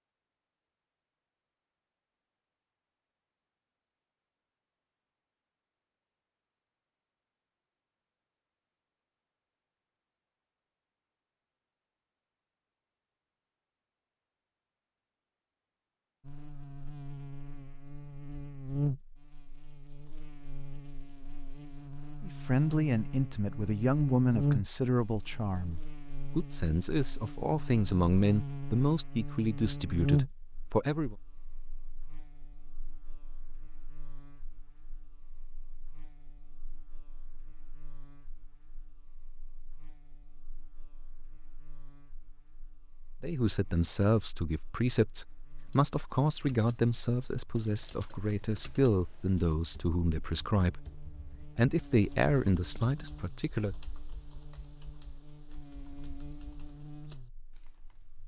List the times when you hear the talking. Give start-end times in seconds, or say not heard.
22.2-31.1, 43.2-53.8.